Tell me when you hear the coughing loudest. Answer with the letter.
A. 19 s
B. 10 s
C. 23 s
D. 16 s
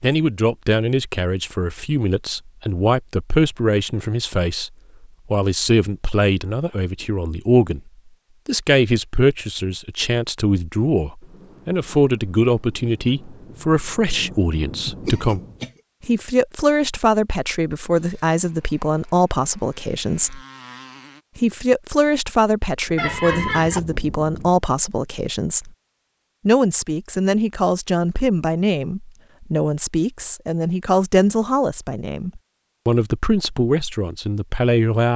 C.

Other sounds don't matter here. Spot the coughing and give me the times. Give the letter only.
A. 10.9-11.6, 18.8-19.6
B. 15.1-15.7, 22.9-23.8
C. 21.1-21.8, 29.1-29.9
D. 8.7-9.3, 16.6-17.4
B.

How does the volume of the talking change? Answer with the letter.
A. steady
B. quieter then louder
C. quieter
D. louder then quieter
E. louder
A.